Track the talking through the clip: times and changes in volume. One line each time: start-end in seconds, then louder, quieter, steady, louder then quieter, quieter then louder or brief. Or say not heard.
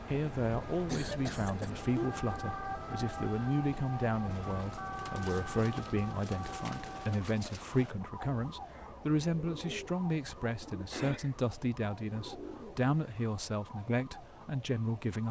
0.1-15.2 steady.